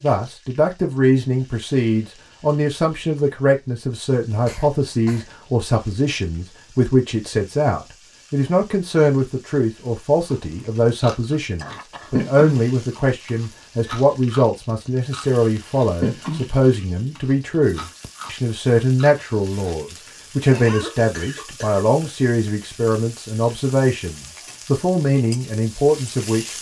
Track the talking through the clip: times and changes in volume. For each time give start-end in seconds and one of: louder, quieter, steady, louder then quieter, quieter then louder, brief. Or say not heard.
0.0-26.5 steady.